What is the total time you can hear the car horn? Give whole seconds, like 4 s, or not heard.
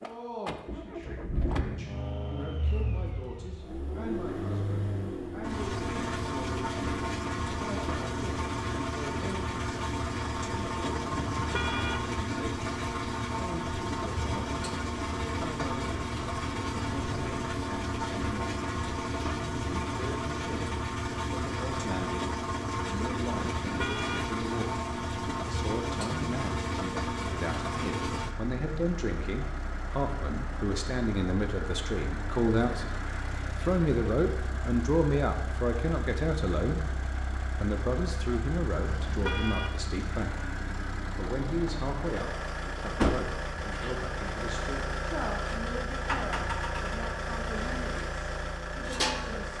2 s.